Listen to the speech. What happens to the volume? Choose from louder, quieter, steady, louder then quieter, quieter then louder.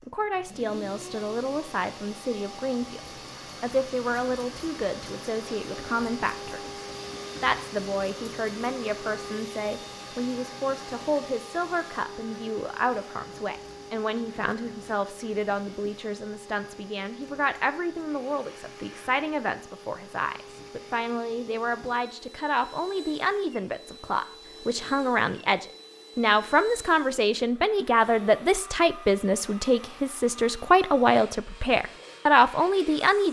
louder.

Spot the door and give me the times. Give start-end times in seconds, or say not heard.
not heard.